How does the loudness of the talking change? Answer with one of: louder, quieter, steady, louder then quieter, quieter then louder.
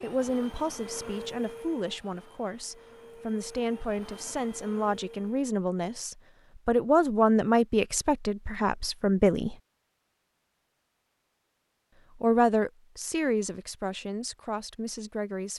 louder then quieter.